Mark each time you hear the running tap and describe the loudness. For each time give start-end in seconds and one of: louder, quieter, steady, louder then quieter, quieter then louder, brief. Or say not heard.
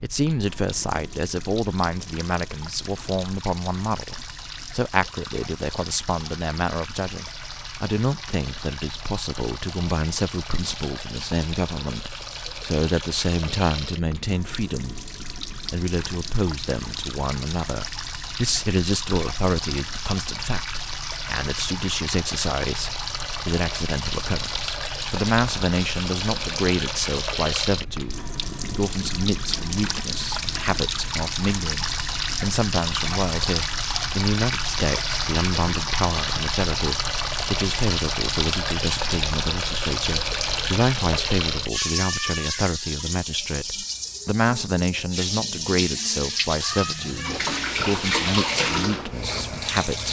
0.1-50.0 louder.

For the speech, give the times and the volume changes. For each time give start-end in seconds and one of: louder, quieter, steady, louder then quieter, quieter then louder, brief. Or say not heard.
0.0-15.0 steady
15.7-50.0 steady.